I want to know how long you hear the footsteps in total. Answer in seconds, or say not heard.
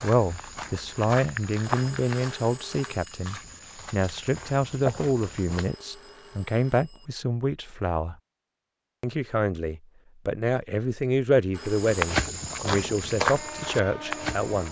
9 s.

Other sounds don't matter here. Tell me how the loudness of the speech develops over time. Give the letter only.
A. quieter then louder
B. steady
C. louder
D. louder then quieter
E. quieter
B.